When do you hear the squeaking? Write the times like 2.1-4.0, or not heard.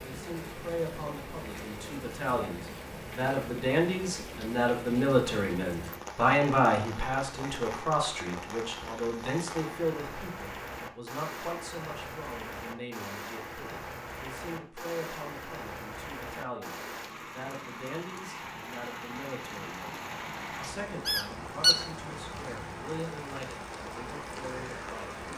20.6-21.9.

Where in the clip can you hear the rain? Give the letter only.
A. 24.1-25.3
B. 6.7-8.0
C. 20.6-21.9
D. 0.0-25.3
D.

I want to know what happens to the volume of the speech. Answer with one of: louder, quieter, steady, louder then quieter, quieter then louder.
quieter.